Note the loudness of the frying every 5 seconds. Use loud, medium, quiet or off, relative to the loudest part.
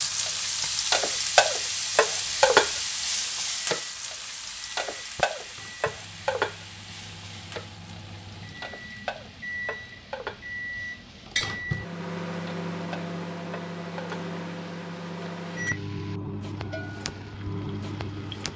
loud, medium, quiet, quiet.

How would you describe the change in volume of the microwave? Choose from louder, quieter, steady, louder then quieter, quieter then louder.
louder.